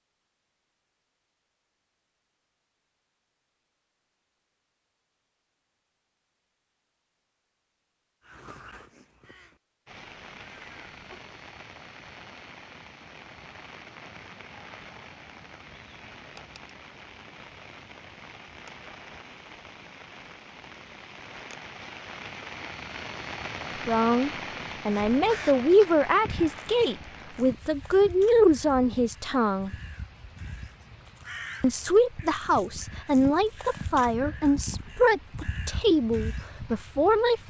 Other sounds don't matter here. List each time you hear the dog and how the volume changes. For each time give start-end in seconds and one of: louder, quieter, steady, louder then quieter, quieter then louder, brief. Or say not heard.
not heard.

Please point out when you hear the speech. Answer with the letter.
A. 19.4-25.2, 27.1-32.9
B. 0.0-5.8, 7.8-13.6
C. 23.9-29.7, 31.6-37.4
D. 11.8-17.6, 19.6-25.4
C.